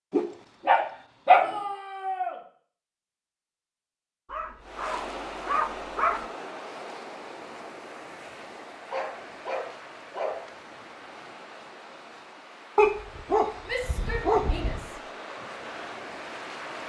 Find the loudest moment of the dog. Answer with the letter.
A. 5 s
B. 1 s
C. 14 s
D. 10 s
B.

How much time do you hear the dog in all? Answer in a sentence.
You can hear the dog for 7 seconds altogether.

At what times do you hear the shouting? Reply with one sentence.
The shouting can be heard from 1.3 to 2.4 s and from 13.7 to 15.0 s.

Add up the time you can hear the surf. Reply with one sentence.
You can hear the surf for 12 seconds altogether.